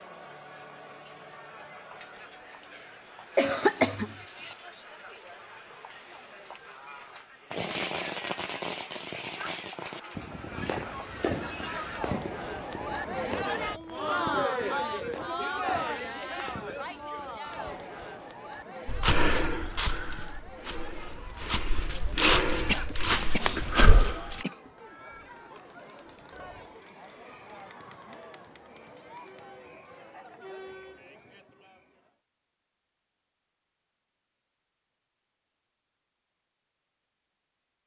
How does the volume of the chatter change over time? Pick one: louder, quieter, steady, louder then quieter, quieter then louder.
louder then quieter.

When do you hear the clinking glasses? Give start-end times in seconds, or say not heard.
not heard.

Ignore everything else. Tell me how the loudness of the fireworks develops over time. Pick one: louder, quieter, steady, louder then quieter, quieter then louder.
quieter.